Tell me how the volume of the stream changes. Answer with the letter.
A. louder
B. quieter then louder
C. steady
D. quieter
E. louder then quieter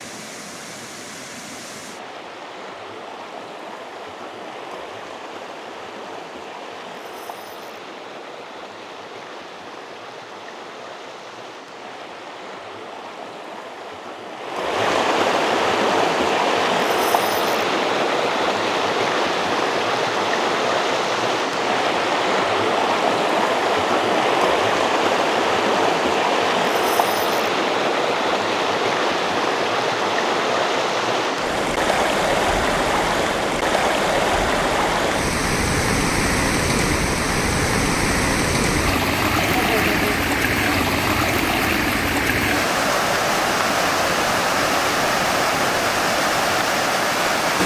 A.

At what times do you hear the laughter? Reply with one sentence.
The laughter can be heard from 39.4 to 40.1 s.